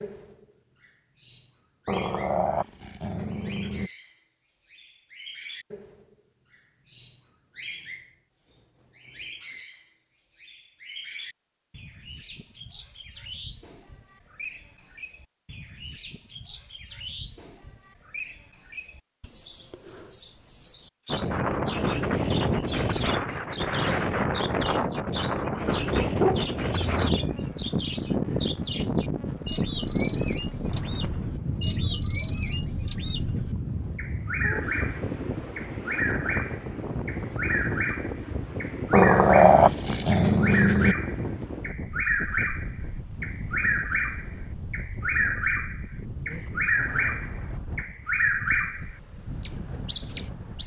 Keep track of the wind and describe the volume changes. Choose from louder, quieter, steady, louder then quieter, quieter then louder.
quieter.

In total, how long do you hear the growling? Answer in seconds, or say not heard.
6 s.